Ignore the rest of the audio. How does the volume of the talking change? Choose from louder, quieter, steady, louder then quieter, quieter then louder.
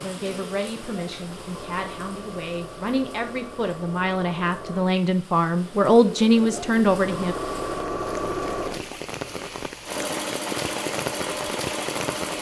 louder.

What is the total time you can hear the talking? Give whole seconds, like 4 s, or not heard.
7 s.